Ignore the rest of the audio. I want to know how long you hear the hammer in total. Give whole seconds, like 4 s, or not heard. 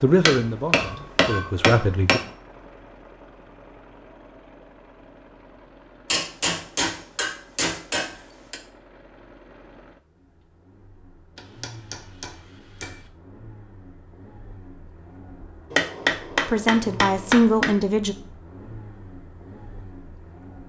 8 s.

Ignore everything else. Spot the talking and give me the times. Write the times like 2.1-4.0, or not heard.
0.0-2.2, 16.4-18.1.